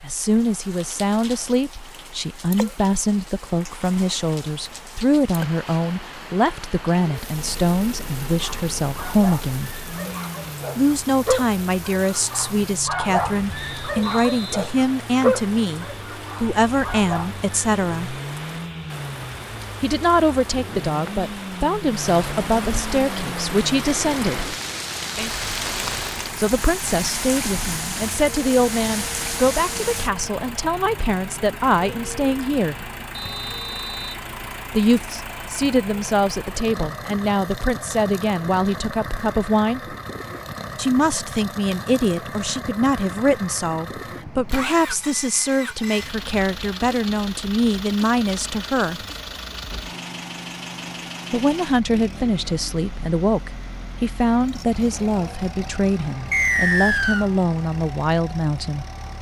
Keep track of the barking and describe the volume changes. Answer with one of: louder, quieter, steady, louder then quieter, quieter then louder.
louder then quieter.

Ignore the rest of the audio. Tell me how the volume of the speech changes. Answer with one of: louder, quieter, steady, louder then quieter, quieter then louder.
steady.